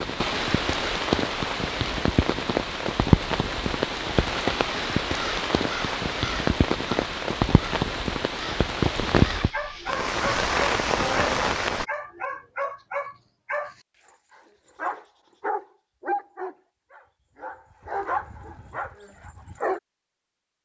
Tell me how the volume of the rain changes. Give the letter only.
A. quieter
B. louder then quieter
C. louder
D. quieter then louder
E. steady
E.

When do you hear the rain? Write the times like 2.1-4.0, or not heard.
0.0-11.8.